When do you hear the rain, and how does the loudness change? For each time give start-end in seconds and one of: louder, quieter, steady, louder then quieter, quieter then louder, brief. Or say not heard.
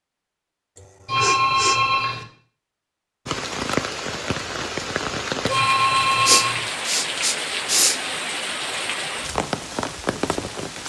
3.2-10.8 steady.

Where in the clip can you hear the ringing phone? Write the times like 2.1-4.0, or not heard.
1.1-2.2, 5.5-6.7.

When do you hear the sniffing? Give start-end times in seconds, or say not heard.
0.8-1.8, 6.2-8.0.